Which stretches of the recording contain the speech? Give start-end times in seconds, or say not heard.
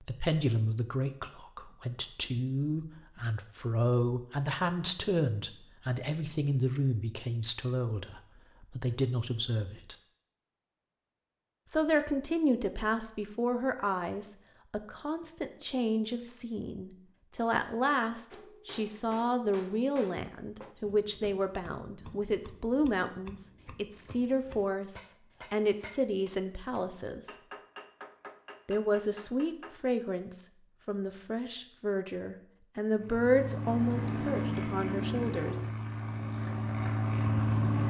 0.0-9.9, 11.7-27.3, 28.6-35.6.